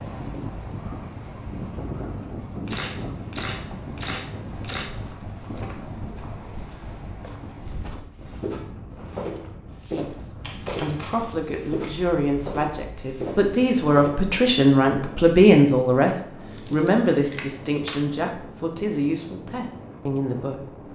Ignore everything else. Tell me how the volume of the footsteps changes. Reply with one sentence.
The volume of the footsteps goes up.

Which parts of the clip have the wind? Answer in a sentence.
The wind can be heard from 0.0 to 20.9 s.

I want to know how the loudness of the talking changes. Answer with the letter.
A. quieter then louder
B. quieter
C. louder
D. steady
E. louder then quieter
E.